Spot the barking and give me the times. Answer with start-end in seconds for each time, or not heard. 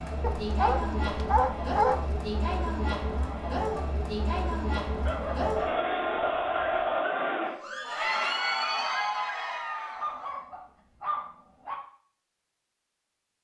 0.2-2.2, 5.0-7.0, 9.9-11.8.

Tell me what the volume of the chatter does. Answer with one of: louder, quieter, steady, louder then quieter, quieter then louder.
steady.